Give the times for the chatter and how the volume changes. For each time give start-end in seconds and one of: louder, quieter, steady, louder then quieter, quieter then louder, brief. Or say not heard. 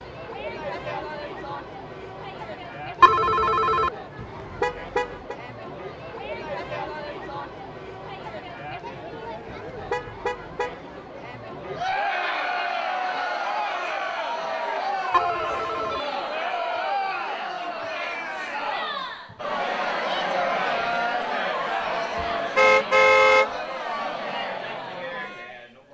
0.0-25.8 louder.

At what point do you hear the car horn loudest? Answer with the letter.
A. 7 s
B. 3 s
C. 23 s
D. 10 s
C.